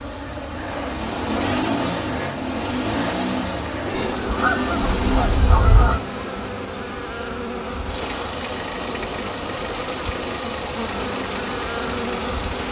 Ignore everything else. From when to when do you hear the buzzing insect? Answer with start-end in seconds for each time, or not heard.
0.0-12.6.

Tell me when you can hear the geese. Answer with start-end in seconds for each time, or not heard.
4.0-6.0.